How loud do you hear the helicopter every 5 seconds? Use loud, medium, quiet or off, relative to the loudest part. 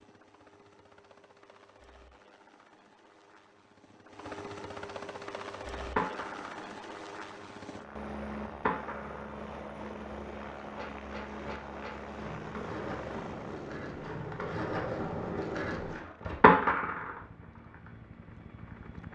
medium, loud, loud, medium.